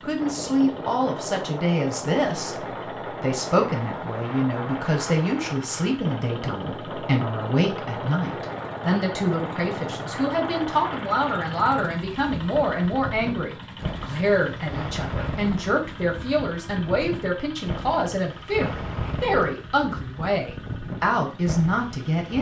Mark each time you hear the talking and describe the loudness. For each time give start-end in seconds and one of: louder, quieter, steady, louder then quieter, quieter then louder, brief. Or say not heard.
0.0-22.3 steady.